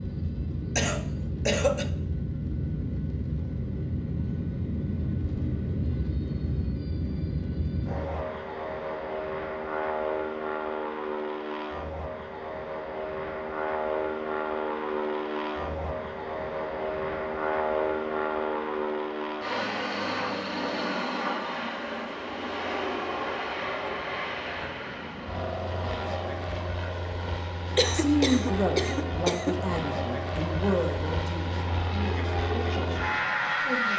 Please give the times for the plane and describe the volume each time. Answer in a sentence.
The plane can be heard from 0.0 to 33.9 s, at a steady volume.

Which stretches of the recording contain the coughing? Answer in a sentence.
You can hear the coughing from 0.8 to 1.9 s and from 27.8 to 29.6 s.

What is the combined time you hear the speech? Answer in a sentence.
The speech can be heard for 6 seconds in total.